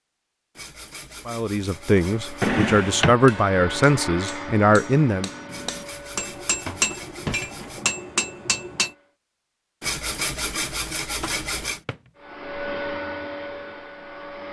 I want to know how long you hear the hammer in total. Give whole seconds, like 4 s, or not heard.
6 s.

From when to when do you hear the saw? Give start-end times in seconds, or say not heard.
0.6-2.5, 5.5-7.8, 9.8-11.8.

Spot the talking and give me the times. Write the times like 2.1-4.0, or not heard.
1.2-5.3.